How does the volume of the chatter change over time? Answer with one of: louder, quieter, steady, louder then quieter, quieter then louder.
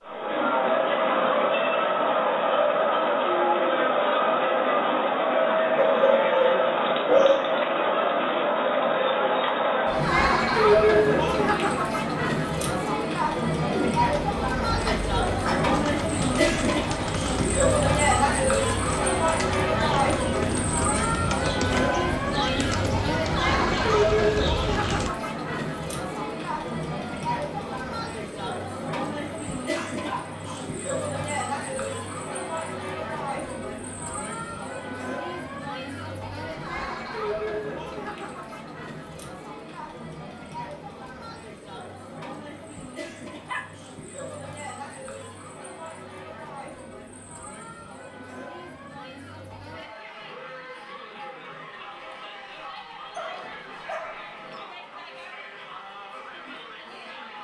quieter.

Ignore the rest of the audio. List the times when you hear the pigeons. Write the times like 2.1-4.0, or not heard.
13.7-25.1.